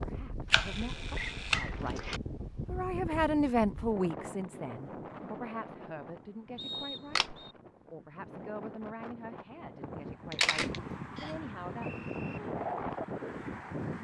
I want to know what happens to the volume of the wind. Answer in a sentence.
The volume of the wind goes down, then up.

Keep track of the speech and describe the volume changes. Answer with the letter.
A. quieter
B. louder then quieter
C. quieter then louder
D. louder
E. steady
B.